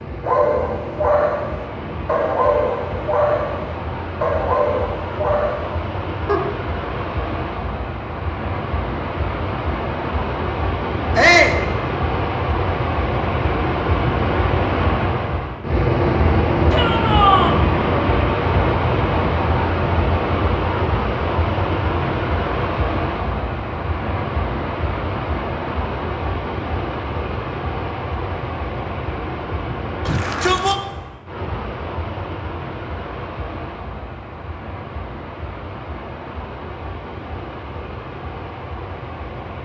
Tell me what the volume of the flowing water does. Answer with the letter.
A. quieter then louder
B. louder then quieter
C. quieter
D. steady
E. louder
B.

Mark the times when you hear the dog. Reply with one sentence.
You can hear the dog from 0.2 to 6.6 s.